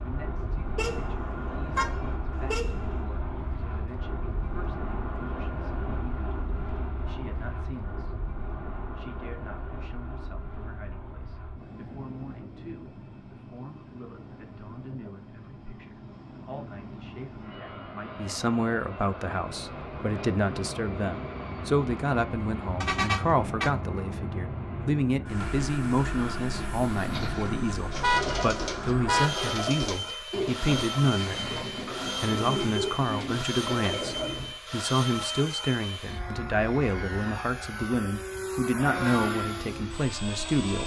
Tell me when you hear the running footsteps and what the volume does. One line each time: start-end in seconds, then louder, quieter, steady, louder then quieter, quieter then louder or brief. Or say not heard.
not heard.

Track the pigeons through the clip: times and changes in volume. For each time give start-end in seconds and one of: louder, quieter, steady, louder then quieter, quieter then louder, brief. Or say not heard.
26.9-34.5 steady.